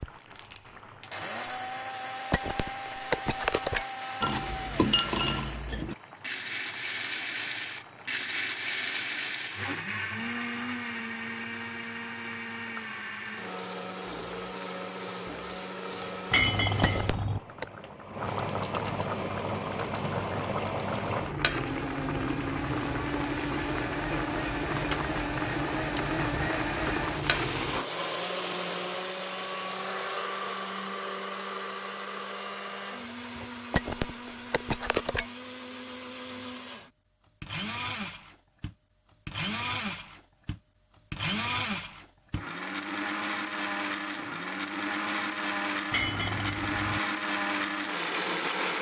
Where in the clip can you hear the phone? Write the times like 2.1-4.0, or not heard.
2.3-3.9, 16.8-17.6, 33.7-35.2.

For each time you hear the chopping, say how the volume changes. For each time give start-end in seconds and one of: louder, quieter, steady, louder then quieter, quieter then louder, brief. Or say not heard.
not heard.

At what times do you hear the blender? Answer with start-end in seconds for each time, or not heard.
0.0-17.2, 21.4-48.7.